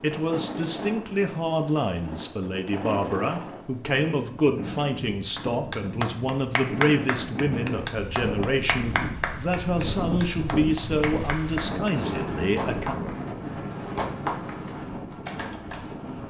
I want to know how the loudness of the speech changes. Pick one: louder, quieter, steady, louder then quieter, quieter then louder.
steady.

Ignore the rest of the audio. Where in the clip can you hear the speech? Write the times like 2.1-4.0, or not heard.
0.0-12.9.